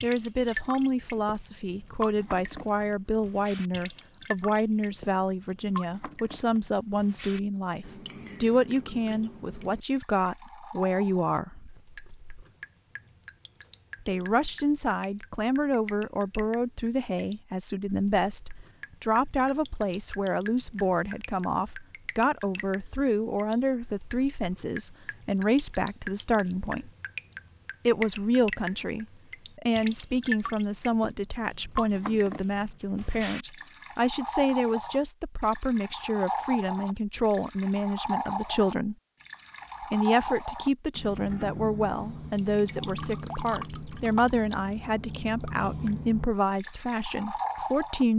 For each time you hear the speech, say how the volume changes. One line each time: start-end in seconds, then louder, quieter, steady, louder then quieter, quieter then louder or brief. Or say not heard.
0.0-11.7 steady
14.0-26.9 steady
27.9-39.0 steady
39.8-48.1 steady.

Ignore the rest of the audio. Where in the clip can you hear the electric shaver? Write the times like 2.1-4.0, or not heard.
not heard.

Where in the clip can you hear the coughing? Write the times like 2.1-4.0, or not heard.
not heard.